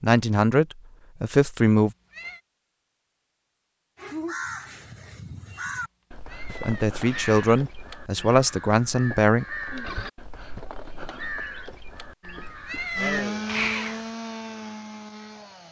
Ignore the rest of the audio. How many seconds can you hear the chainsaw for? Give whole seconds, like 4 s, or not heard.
3 s.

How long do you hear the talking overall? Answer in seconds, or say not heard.
5 s.